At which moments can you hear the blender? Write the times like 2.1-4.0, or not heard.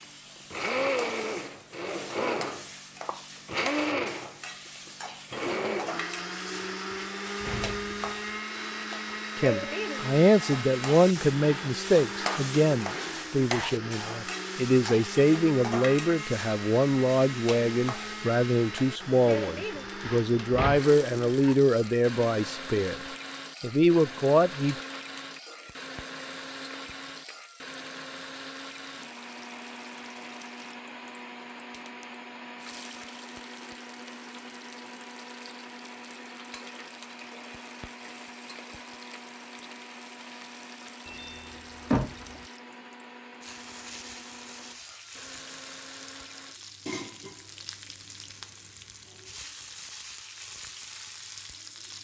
0.0-46.6.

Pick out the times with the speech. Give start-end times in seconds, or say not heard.
9.3-23.0, 23.6-24.8.